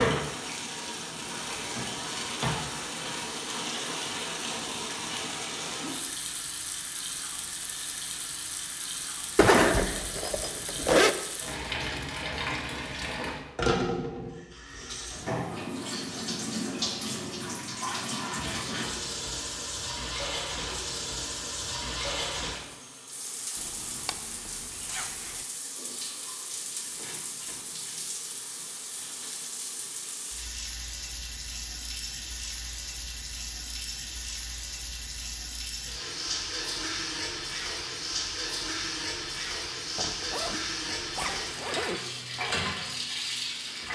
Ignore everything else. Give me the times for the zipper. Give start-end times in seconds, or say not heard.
9.3-11.2, 23.6-25.4, 40.0-42.0.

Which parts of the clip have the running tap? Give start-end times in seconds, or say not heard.
0.0-43.9.